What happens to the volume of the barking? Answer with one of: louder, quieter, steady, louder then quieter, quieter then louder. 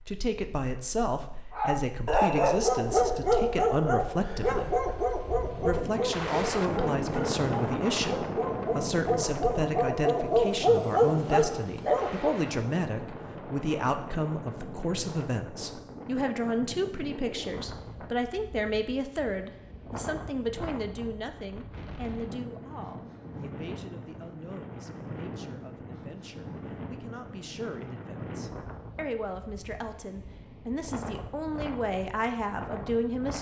quieter then louder.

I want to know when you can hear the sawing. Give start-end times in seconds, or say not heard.
not heard.